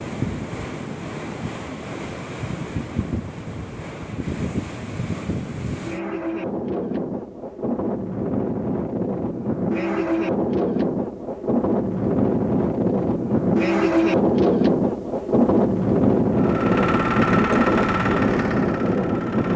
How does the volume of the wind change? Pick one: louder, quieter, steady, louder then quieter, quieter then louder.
louder.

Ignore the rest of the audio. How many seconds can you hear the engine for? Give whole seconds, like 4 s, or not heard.
3 s.